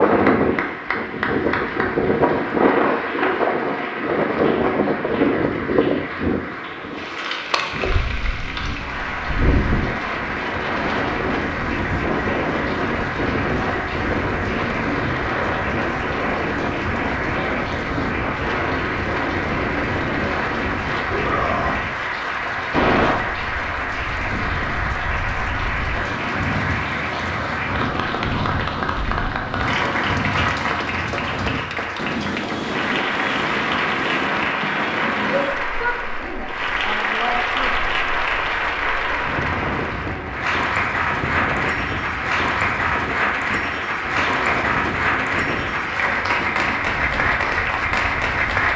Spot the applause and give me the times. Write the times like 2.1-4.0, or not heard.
0.0-48.7.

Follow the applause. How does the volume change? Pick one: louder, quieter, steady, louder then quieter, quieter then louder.
louder.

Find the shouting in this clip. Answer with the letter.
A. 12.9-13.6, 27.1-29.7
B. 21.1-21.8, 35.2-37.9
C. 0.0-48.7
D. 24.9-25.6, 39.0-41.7
B.